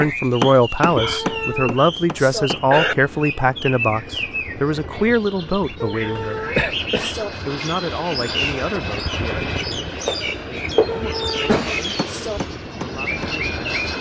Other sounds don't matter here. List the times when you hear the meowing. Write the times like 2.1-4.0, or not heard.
0.9-2.5, 5.8-7.3, 10.8-12.4.